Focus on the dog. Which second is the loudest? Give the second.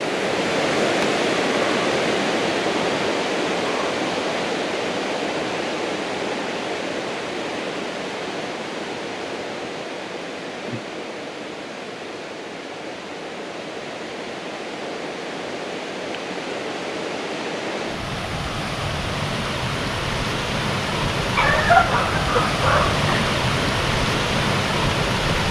22 s.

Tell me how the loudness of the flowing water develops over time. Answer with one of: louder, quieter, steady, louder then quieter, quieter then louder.
quieter then louder.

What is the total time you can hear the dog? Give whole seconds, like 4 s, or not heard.
2 s.